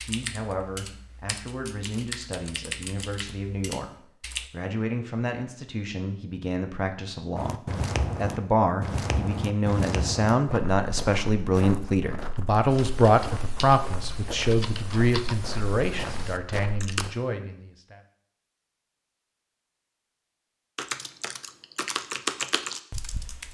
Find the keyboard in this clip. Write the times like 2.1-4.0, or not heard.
0.0-4.5, 12.7-17.1, 20.8-23.5.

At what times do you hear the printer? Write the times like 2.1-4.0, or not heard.
not heard.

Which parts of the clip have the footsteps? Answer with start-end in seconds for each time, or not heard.
7.3-17.1.